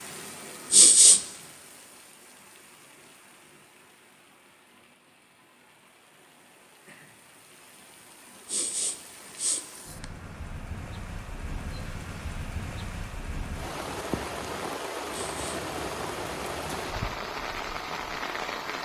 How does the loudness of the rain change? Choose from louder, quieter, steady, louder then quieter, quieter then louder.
quieter then louder.